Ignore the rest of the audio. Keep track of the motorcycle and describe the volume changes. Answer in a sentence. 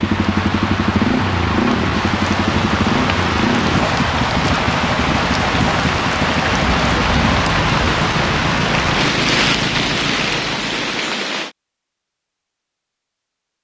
The loudness of the motorcycle goes down.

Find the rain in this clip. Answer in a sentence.
You can hear the rain from 0.0 to 11.5 s.